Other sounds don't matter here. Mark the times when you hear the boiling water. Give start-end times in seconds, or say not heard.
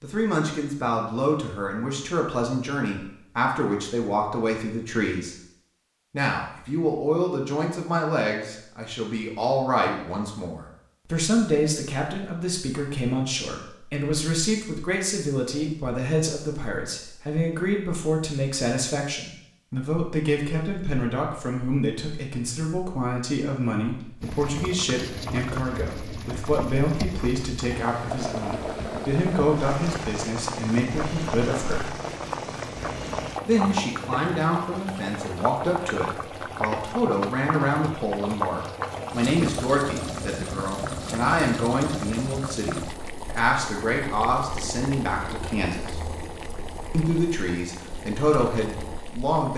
24.2-49.5.